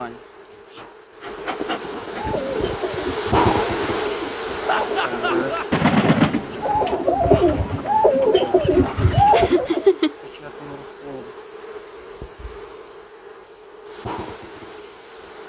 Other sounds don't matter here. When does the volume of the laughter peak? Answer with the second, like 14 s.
10 s.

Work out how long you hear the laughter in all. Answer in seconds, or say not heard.
2 s.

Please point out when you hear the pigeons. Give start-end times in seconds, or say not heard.
2.0-9.9.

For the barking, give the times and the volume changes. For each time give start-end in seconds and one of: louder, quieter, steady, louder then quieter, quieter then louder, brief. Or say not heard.
not heard.